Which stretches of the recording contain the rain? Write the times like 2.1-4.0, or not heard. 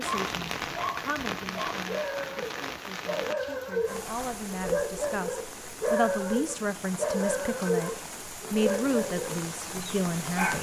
0.0-10.5.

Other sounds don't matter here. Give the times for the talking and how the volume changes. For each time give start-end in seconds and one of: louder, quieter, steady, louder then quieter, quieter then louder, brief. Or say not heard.
0.0-10.5 louder.